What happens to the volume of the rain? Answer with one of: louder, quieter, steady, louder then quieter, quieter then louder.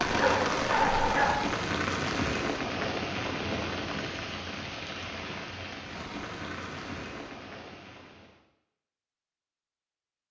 quieter.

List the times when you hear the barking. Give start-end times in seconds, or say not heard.
0.1-1.6.